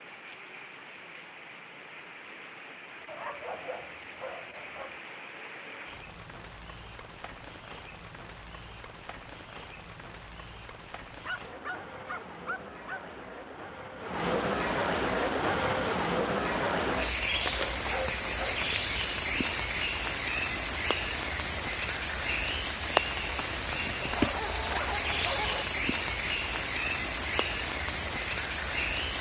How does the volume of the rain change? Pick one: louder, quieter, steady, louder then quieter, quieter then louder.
louder.